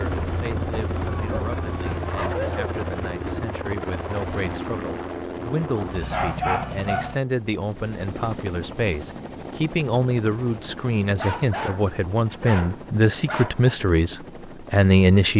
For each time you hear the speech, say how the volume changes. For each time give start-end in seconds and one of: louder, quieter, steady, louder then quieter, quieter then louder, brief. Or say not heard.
0.0-15.3 louder.